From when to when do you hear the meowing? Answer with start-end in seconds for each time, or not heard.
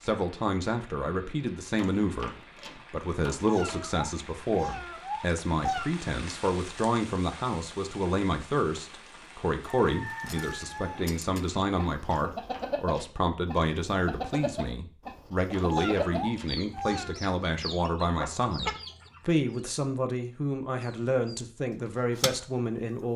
3.5-5.9, 15.7-17.2.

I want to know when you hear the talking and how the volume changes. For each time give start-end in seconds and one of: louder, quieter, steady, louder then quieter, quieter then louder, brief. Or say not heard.
0.0-23.1 steady.